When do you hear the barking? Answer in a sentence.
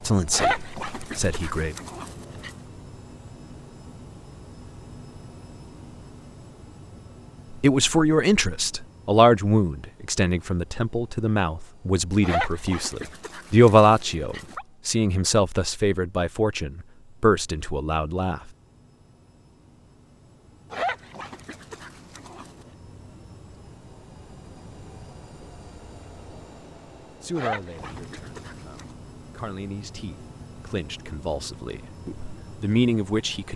You can hear the barking from 0.3 to 2.5 s, from 12.2 to 14.7 s, from 20.7 to 22.6 s and from 27.4 to 28.9 s.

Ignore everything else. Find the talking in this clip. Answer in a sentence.
The talking can be heard from 0.1 to 1.8 s, from 7.5 to 18.4 s and from 27.2 to 33.5 s.